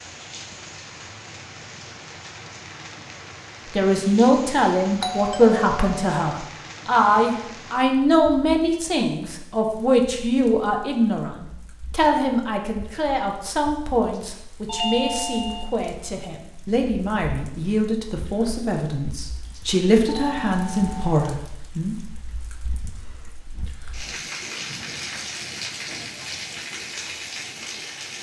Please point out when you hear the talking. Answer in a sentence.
You can hear the talking from 3.8 to 21.9 s.